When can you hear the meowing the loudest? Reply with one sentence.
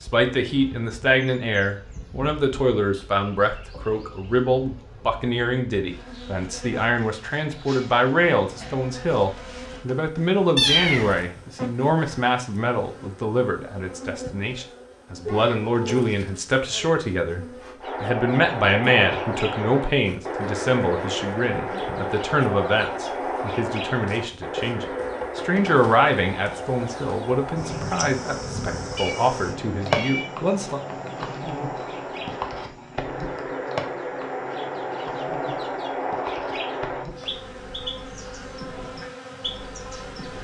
The volume of the meowing peaks at 11 seconds.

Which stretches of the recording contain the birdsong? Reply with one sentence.
You can hear the birdsong from 17.8 to 40.4 s.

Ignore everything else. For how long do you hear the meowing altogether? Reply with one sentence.
You can hear the meowing for 3 seconds altogether.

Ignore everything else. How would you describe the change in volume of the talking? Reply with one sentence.
The volume of the talking stays about the same.